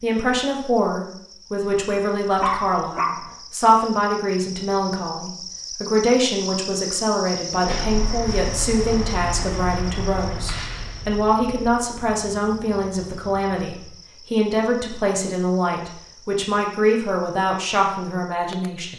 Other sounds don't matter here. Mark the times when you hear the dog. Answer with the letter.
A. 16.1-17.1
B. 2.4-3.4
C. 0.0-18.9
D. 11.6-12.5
B.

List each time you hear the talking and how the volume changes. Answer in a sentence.
The talking can be heard from 0.0 to 18.9 s, at a steady volume.